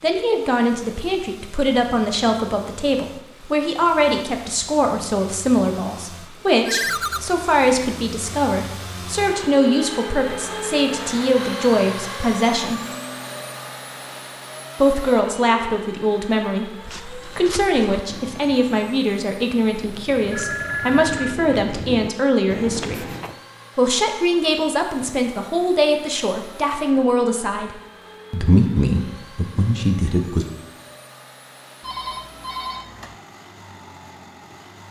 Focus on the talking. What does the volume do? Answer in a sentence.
The volume of the talking stays about the same.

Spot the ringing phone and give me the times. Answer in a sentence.
The ringing phone can be heard from 6.7 to 7.2 s, from 20.3 to 21.4 s and from 31.8 to 33.1 s.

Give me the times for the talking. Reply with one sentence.
You can hear the talking from 0.0 to 12.8 s, from 14.8 to 23.1 s and from 23.8 to 30.4 s.